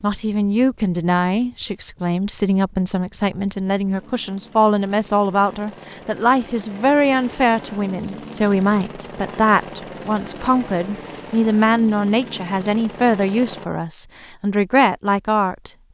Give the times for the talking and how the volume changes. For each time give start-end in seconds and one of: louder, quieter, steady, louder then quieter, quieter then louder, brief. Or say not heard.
0.0-15.7 steady.